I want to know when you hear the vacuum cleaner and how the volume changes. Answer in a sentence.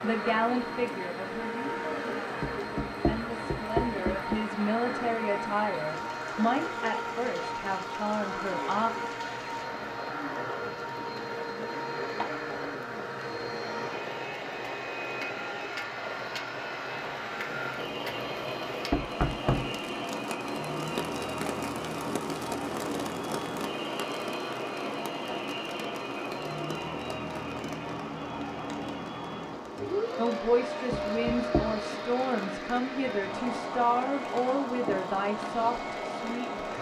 You can hear the vacuum cleaner from 0.0 to 36.7 s, at a steady volume.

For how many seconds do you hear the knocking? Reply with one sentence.
You can hear the knocking for 4 seconds altogether.